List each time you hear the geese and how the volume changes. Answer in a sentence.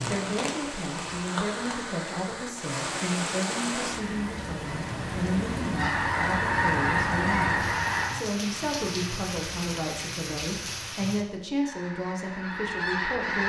The geese can be heard from 4.0 to 8.2 s, getting louder; and briefly from 11.6 to 13.4 s.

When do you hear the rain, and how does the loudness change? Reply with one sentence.
You can hear the rain from 0.0 to 11.2 s, at a steady volume.